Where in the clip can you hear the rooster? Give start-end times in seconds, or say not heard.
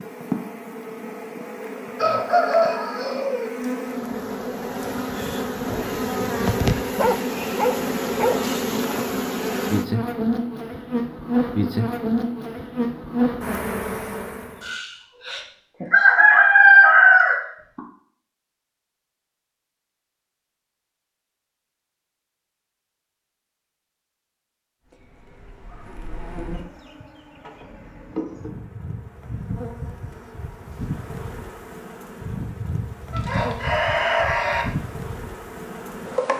1.9-3.5, 14.7-17.8, 33.1-34.6.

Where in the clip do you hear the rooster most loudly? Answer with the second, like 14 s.
17 s.